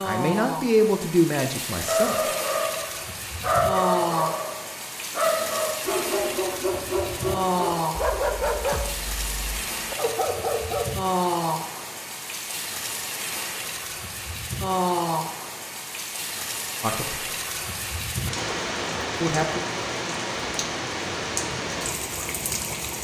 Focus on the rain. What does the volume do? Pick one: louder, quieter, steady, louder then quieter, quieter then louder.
steady.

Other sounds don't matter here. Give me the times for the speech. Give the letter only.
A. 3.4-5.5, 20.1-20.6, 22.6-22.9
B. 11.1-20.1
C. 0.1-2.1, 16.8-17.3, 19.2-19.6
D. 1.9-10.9
C.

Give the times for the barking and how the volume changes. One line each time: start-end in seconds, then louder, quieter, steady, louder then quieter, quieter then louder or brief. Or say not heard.
1.9-10.9 quieter.